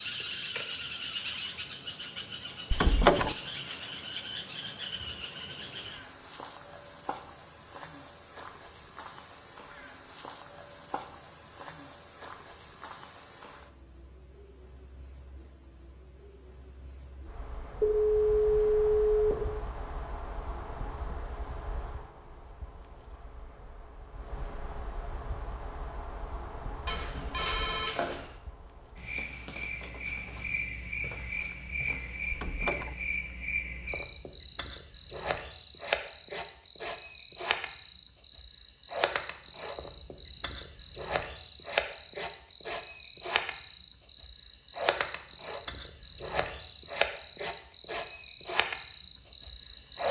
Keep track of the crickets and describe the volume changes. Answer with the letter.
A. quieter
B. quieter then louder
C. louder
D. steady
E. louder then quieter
B.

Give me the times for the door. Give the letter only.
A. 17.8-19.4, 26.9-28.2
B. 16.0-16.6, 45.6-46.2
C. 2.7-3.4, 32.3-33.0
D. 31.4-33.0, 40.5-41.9
C.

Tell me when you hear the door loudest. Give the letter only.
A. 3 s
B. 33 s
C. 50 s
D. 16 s
A.